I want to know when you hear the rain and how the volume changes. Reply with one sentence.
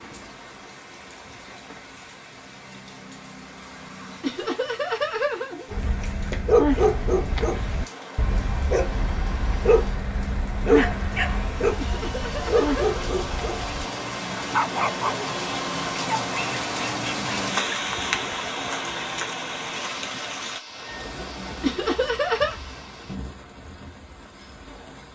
You can hear the rain from 0.0 to 25.1 s, getting louder then quieter.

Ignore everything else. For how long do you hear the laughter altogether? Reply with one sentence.
The laughter can be heard for 4 seconds in total.